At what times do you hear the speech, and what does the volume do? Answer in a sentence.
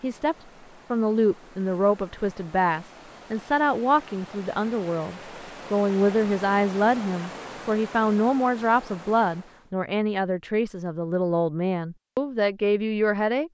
The speech can be heard from 0.0 to 13.4 s, at a steady volume.